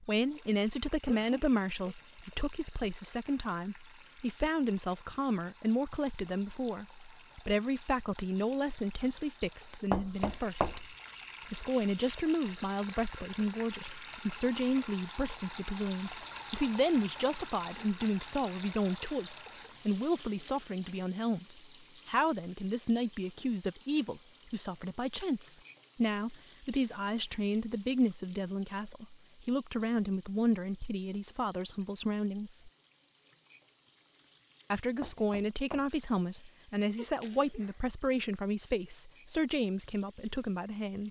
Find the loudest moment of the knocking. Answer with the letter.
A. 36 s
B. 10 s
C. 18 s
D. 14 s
B.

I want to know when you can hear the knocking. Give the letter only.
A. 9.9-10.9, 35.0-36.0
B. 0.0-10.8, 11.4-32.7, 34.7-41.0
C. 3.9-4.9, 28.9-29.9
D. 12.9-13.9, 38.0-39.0
A.